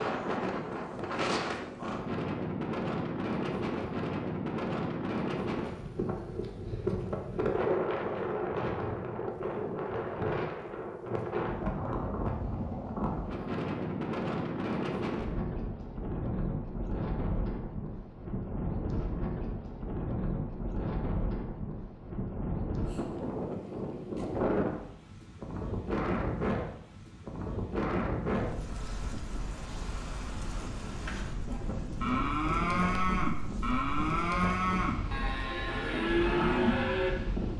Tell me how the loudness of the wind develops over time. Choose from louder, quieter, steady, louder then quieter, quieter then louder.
quieter.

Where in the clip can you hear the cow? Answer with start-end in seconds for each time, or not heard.
31.4-37.1.